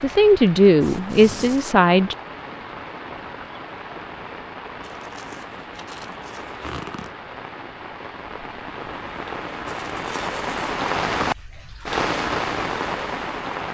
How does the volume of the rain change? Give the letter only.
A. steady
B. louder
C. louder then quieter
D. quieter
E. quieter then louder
B.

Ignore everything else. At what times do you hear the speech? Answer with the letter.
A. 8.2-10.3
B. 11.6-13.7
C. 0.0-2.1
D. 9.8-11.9
C.